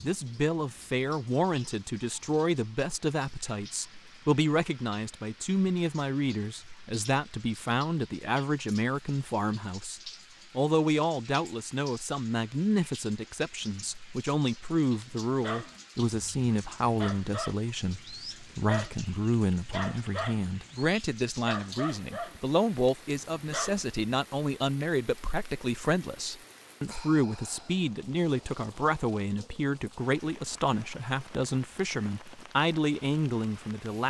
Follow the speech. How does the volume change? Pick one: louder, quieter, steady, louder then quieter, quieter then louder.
steady.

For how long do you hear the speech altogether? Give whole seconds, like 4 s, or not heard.
34 s.